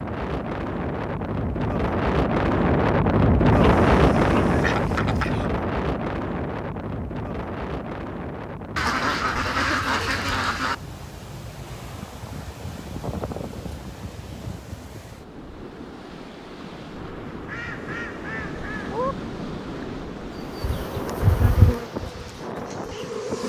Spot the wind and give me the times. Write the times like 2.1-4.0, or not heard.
0.0-23.4.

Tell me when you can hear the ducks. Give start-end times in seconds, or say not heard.
3.5-5.5, 8.8-10.8, 17.4-19.1.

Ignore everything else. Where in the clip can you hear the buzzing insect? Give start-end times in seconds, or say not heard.
20.5-23.4.